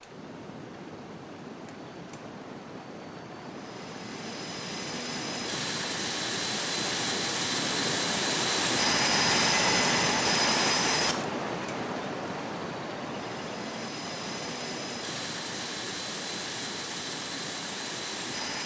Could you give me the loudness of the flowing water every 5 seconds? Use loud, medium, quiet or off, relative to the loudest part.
medium, loud, loud, medium.